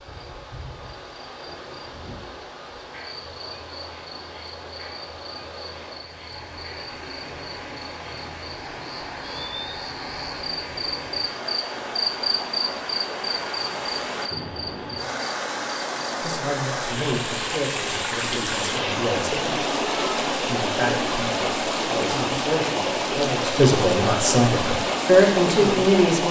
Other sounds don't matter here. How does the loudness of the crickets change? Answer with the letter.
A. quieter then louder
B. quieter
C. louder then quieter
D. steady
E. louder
E.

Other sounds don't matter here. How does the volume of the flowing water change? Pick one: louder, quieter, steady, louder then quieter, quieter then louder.
louder.